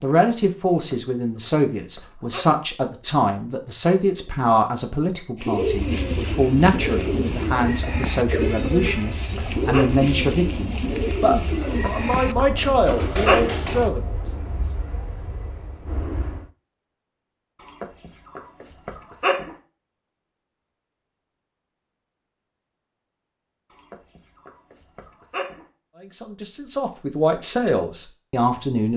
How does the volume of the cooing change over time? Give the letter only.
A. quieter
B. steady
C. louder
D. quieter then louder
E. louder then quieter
B.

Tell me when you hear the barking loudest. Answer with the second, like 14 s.
13 s.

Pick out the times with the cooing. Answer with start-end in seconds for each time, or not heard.
5.4-13.9.